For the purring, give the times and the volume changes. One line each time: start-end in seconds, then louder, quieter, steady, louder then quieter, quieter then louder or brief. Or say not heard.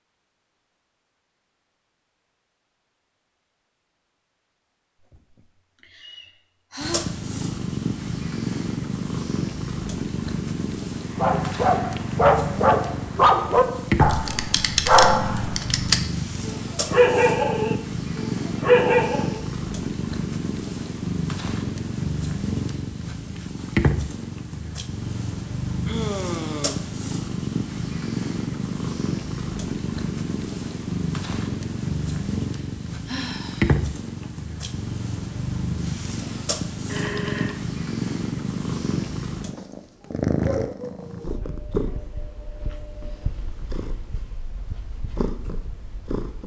6.8-46.4 steady.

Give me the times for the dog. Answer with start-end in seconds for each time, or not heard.
11.2-19.4.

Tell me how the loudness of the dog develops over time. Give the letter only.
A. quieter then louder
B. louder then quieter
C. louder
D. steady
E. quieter
D.